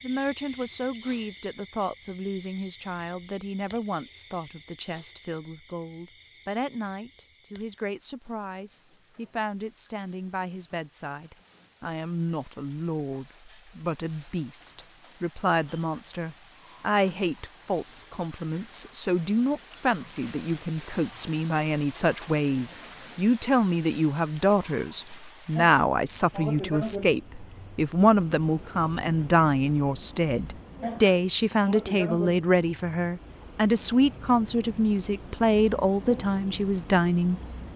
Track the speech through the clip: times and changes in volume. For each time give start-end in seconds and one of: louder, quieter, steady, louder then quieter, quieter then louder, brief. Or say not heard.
0.0-37.7 louder.